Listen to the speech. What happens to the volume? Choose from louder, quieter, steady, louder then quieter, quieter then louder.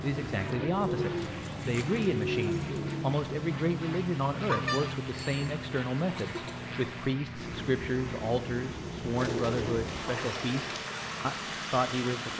steady.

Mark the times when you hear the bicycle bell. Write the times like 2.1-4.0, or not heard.
4.5-5.5.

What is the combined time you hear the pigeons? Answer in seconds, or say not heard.
4 s.